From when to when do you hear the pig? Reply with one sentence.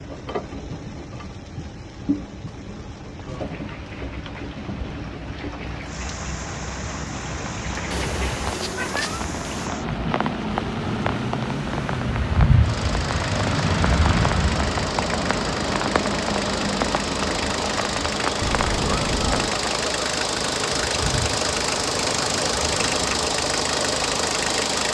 You can't hear the pig here.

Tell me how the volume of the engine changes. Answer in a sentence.
The loudness of the engine goes up.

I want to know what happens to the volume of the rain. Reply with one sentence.
The volume of the rain goes up, then down.